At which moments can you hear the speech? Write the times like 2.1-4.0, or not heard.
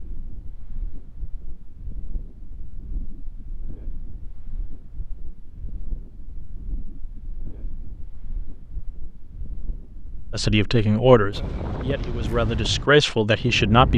10.3-13.9.